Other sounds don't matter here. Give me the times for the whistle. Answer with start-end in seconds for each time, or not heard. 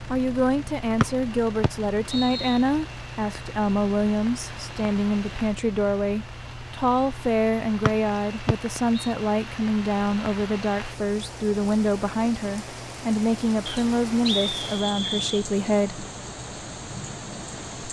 1.0-2.6, 7.8-9.1, 13.7-15.4.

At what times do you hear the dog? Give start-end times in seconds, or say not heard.
not heard.